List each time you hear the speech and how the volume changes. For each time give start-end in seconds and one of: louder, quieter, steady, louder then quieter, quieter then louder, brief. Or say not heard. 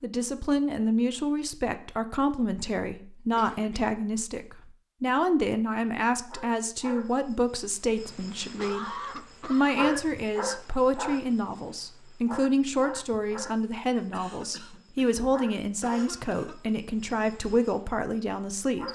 0.0-18.9 steady.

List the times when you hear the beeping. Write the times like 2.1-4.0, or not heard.
not heard.